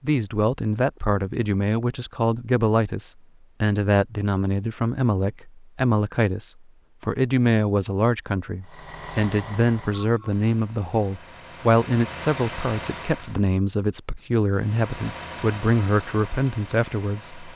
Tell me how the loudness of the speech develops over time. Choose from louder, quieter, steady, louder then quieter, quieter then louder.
steady.